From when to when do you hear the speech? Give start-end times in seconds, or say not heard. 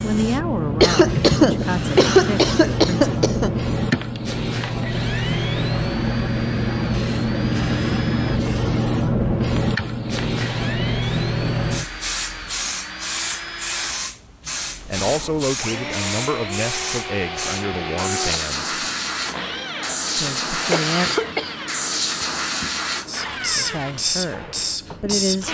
0.0-3.1, 14.8-18.8, 20.1-21.1, 23.4-25.4.